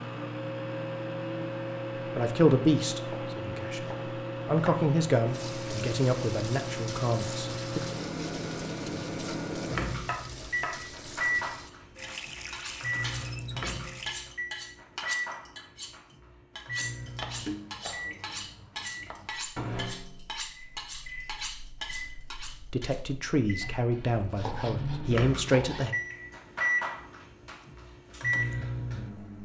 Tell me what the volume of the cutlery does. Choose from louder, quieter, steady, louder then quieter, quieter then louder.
steady.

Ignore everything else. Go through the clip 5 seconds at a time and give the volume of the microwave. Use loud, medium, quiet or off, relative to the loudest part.
loud, loud, loud, medium, medium, loud.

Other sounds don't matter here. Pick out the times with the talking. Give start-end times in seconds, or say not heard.
2.1-7.8, 22.7-25.9.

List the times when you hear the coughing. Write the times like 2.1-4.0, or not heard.
not heard.